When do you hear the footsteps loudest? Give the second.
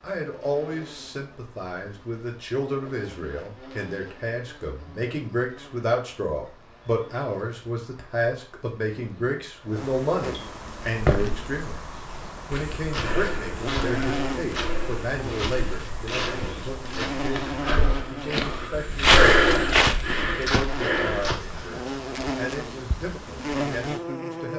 19 s.